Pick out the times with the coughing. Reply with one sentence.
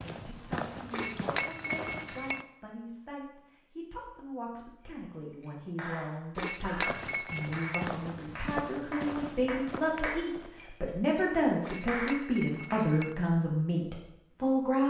The coughing can't be heard in this clip.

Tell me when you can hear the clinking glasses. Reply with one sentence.
You can hear the clinking glasses from 0.9 to 2.5 s, from 6.3 to 7.8 s and from 11.6 to 13.2 s.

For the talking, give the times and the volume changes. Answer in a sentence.
The talking can be heard from 0.0 to 14.8 s, getting louder.